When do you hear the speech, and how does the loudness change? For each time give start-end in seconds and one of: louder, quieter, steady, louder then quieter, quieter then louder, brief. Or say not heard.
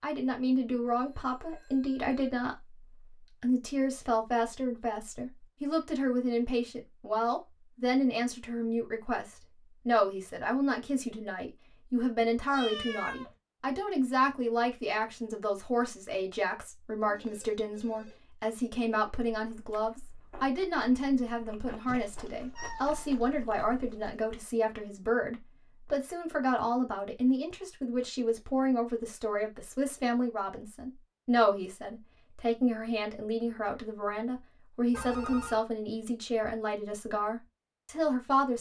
0.0-38.5 steady.